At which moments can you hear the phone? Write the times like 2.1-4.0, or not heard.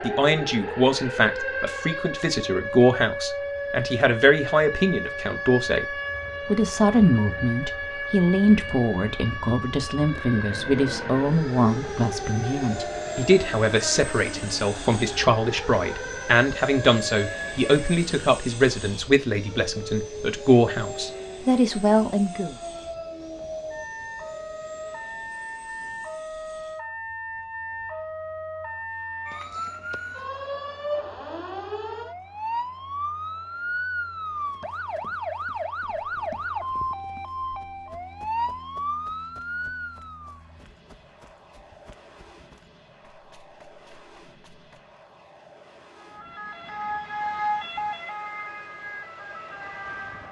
not heard.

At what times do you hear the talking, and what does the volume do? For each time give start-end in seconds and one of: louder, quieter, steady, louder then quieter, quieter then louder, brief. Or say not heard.
0.0-22.6 steady.